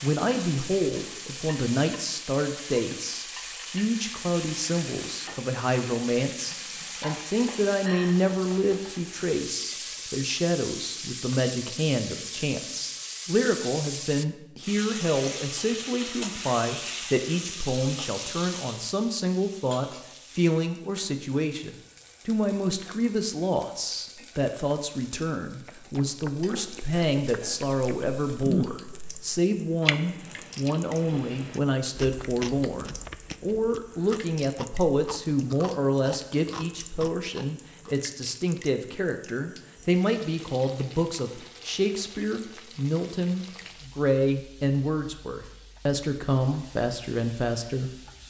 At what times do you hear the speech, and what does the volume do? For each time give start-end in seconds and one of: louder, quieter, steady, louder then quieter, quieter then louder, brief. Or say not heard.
0.0-48.0 steady.